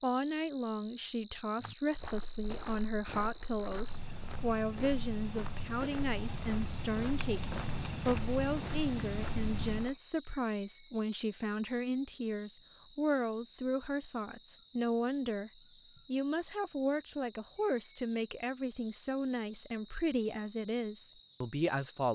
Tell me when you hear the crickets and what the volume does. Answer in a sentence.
You can hear the crickets from 0.0 to 22.1 s, getting louder.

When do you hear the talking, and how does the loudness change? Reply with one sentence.
You can hear the talking from 0.0 to 22.1 s, at a steady volume.